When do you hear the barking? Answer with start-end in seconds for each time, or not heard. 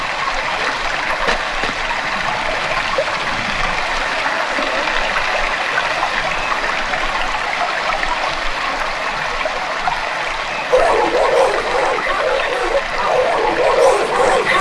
10.7-14.5.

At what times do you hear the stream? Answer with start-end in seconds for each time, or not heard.
0.0-14.5.